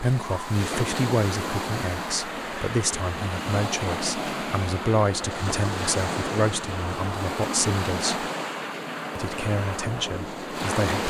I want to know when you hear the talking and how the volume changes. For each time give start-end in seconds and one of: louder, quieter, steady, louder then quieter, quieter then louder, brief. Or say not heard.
0.0-8.3 steady
9.2-11.0 brief.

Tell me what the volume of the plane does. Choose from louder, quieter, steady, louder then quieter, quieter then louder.
steady.